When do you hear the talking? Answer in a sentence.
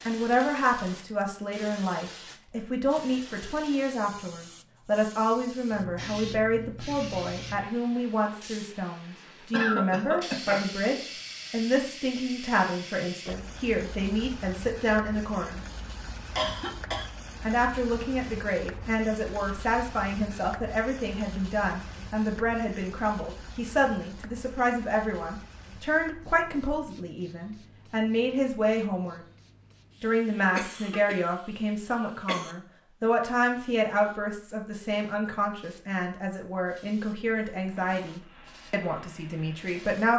The talking can be heard from 0.1 to 15.6 s, from 17.4 to 29.2 s and from 30.0 to 40.1 s.